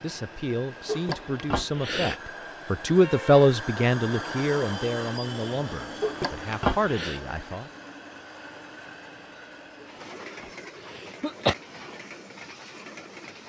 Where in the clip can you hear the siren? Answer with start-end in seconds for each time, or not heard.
not heard.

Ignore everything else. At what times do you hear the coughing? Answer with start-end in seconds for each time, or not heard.
0.8-2.2, 6.0-7.2, 10.4-11.6.